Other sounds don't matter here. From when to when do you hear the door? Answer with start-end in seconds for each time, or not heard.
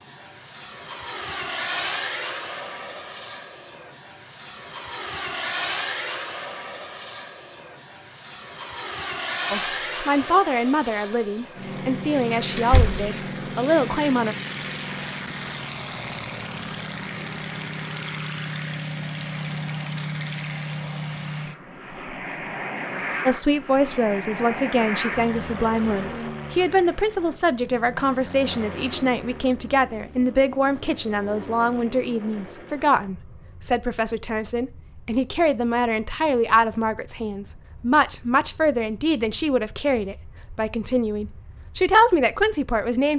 12.6-13.1.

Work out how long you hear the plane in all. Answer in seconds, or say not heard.
43 s.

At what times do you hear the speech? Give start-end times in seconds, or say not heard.
9.5-14.3, 23.2-43.1.